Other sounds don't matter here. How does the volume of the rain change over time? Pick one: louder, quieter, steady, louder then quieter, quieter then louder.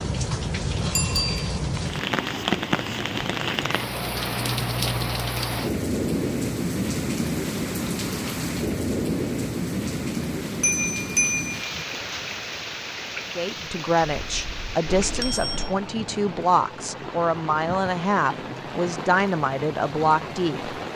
quieter.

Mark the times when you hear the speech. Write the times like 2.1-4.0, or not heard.
13.3-20.8.